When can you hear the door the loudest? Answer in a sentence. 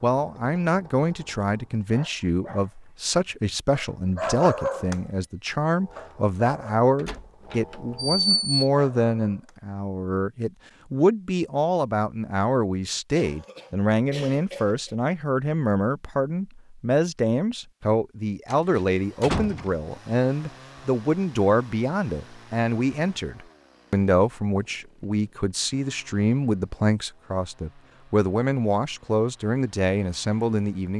The loudest moment of the door is at 8 seconds.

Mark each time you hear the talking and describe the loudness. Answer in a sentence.
The talking can be heard from 0.0 to 30.9 s, at a steady volume.